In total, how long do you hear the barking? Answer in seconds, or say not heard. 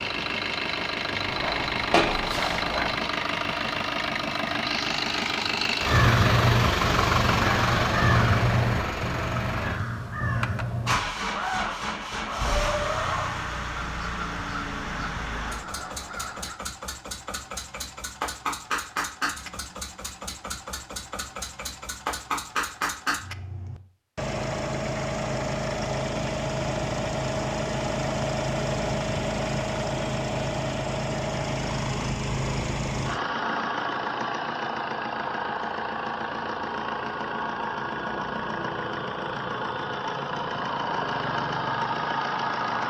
2 s.